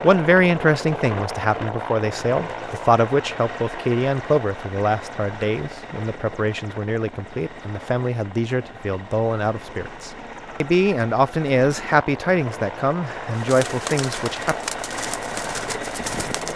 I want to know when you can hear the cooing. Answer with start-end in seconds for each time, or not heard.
13.3-16.5.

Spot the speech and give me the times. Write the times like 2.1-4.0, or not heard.
0.0-14.6.